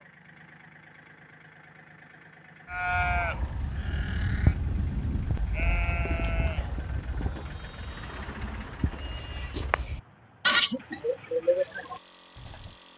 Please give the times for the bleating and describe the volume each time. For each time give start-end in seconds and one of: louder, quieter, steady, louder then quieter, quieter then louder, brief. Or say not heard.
2.7-12.7 quieter then louder.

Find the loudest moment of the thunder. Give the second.
5 s.